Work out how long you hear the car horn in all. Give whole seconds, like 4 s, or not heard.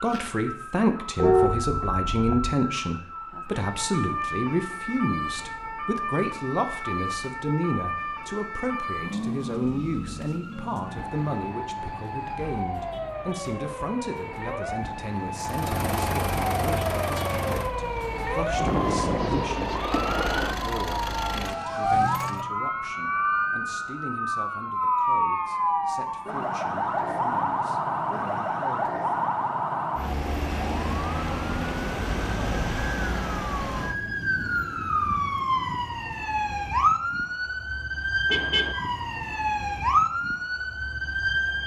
2 s.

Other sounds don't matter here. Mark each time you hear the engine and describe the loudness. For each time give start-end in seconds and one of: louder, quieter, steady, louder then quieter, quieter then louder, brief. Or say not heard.
15.3-22.6 quieter then louder.